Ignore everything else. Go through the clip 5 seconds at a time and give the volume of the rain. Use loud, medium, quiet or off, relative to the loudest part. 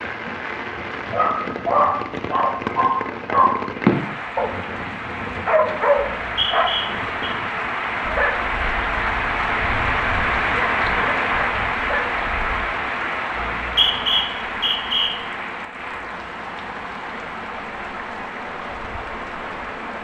medium, loud, loud, medium.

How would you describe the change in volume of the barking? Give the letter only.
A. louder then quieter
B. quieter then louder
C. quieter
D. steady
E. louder
C.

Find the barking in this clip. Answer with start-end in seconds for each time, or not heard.
1.1-12.7.